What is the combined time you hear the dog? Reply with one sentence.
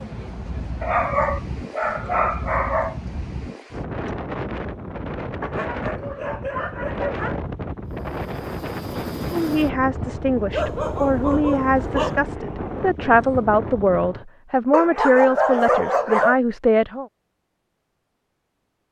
The dog can be heard for 8 seconds in total.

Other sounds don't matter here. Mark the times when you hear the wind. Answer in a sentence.
The wind can be heard from 0.0 to 14.2 s.